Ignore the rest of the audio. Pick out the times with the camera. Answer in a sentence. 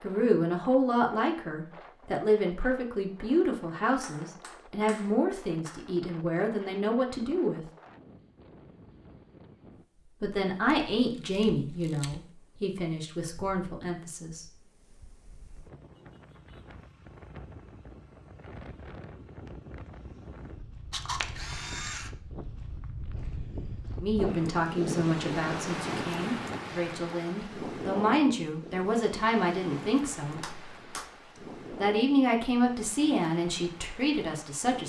You can hear the camera from 10.8 to 12.2 s and from 20.9 to 22.1 s.